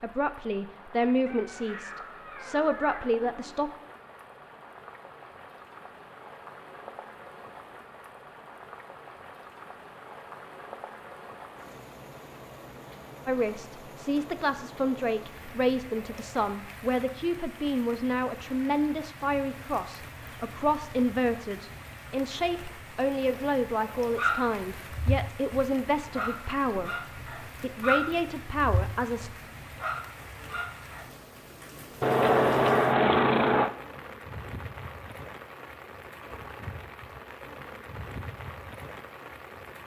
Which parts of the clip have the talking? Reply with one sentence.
The talking can be heard from 0.0 to 3.7 s and from 13.2 to 29.3 s.